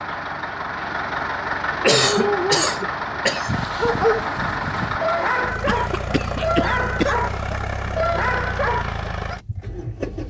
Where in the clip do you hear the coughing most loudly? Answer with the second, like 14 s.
2 s.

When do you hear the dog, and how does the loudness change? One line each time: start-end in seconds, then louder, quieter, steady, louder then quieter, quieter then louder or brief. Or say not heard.
1.9-9.4 steady.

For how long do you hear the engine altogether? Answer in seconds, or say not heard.
10 s.